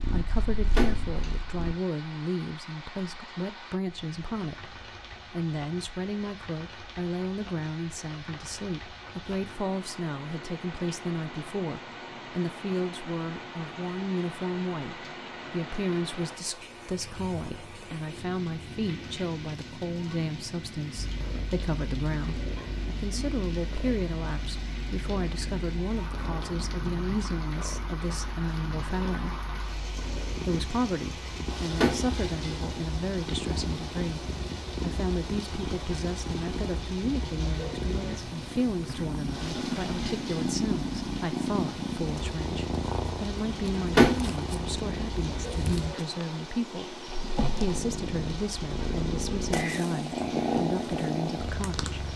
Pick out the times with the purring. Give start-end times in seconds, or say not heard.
0.0-1.8, 20.9-52.1.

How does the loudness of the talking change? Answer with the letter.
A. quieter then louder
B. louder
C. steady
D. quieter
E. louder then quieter
C.